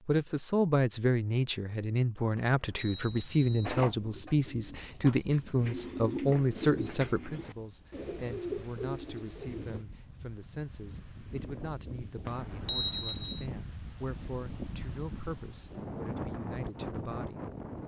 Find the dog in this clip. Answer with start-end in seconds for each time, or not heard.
not heard.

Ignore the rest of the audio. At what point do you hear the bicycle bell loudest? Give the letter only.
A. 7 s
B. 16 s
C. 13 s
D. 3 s
C.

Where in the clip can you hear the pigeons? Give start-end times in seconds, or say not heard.
3.6-9.8.